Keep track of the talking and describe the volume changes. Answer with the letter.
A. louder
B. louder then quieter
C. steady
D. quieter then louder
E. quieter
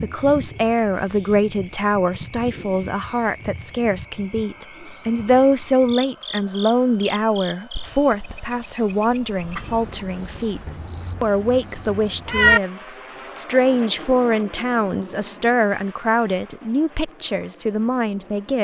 C.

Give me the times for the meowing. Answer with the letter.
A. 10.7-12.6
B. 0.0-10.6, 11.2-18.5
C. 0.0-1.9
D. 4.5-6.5
A.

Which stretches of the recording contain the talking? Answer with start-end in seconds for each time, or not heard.
0.0-10.6, 11.2-18.5.